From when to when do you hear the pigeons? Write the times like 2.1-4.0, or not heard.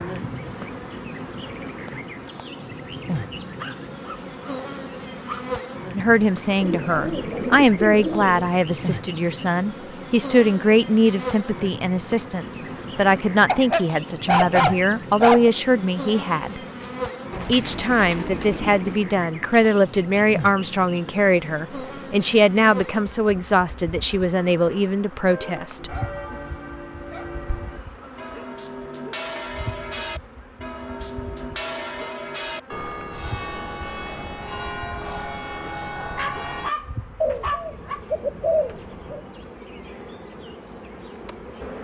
6.6-8.6, 17.3-18.9, 37.2-39.2.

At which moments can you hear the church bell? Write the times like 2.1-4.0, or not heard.
25.2-36.7.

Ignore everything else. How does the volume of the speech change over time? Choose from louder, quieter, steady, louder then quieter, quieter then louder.
steady.